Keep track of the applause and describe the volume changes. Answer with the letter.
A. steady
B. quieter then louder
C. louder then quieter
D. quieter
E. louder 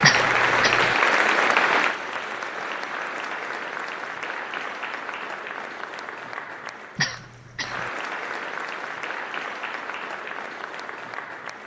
D.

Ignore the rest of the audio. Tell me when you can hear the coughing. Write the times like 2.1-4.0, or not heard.
0.0-0.9, 7.0-7.9.